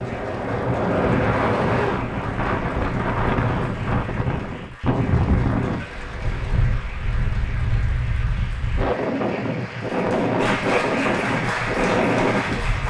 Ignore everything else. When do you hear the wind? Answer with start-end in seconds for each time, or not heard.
0.0-12.8.